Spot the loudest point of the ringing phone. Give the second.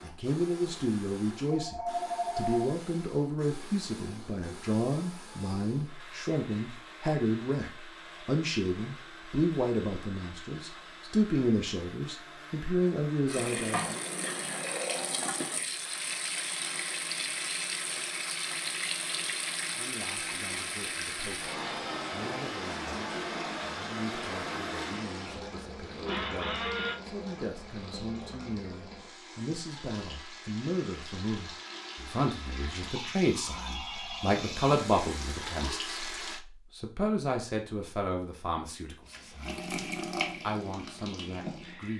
2 s.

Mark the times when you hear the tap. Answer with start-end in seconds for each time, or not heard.
13.2-36.4, 39.0-41.9.